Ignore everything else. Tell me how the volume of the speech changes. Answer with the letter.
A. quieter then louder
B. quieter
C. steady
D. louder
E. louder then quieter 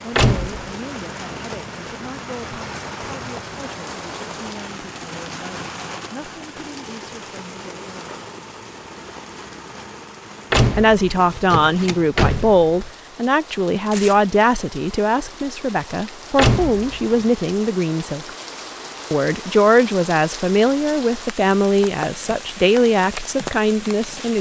D.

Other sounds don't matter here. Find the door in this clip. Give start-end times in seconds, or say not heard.
0.1-0.7, 10.5-12.9, 16.4-17.2.